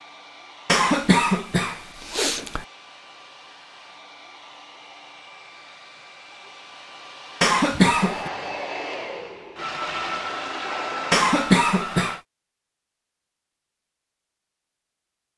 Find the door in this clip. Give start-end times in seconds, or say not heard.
not heard.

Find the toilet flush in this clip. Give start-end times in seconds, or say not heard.
9.6-11.3.